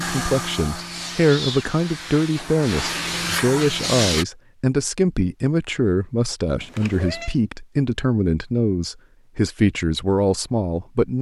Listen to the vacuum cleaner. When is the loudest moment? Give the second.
4 s.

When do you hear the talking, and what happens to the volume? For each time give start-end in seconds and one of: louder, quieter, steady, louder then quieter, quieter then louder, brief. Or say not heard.
0.0-11.1 steady.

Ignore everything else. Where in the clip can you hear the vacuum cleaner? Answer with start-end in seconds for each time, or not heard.
0.0-4.2.